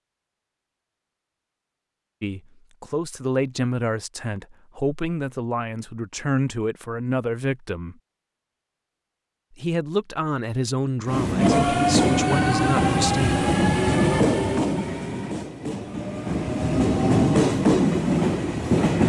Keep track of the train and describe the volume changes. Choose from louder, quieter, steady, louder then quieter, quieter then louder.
quieter then louder.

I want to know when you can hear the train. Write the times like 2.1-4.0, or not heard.
11.1-19.0.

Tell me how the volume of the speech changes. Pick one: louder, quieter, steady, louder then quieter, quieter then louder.
steady.